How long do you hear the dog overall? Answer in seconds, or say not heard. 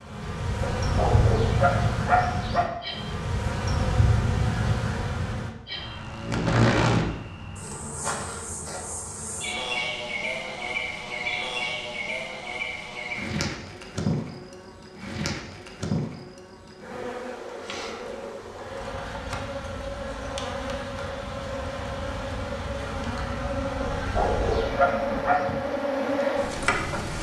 4 s.